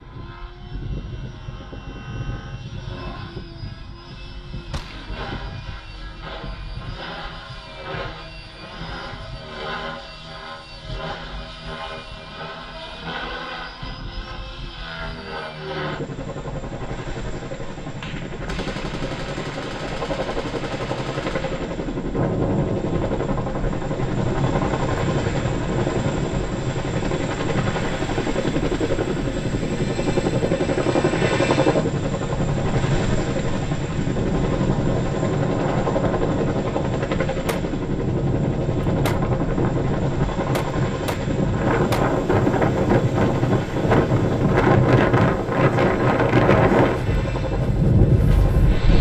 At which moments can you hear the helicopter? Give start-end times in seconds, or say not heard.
0.0-48.9.